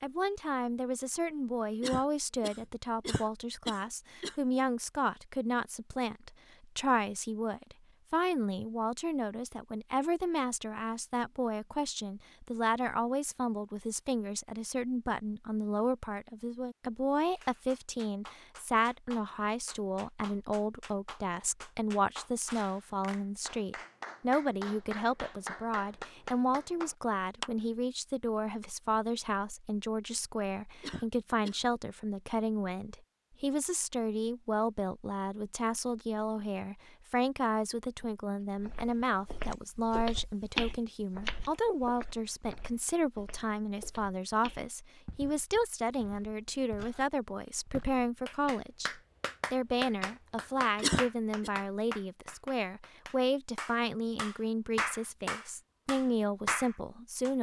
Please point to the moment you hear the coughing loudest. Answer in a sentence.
The loudest moment of the coughing is at 51 seconds.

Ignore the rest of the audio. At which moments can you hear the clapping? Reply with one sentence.
You can hear the clapping from 17.2 to 27.5 s and from 48.2 to 57.3 s.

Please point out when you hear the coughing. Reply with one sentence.
You can hear the coughing from 1.8 to 4.3 s, from 30.8 to 31.6 s and from 50.8 to 51.5 s.